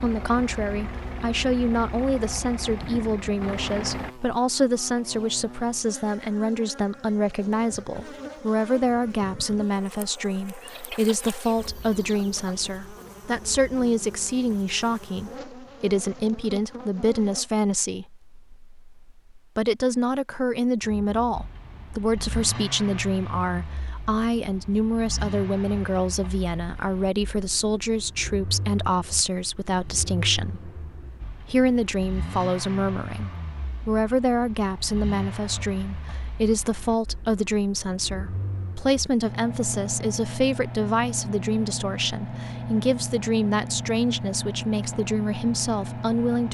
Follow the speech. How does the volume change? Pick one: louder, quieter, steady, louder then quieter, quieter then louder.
steady.